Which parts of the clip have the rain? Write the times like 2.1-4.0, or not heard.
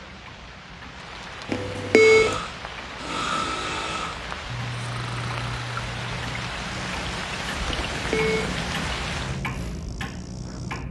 0.0-9.4.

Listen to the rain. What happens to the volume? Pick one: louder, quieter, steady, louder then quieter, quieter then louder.
louder.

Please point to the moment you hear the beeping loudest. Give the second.
2 s.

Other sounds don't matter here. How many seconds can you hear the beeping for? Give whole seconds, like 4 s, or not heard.
2 s.